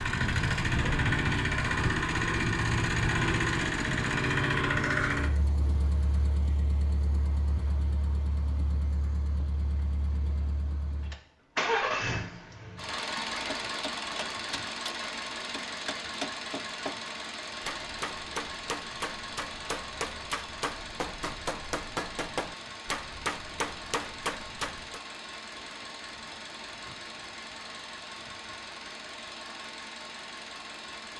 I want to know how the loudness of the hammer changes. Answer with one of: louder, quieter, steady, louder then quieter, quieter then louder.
louder.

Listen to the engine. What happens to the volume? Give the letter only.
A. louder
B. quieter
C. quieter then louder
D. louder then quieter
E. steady
B.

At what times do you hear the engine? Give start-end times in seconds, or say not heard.
0.0-31.1.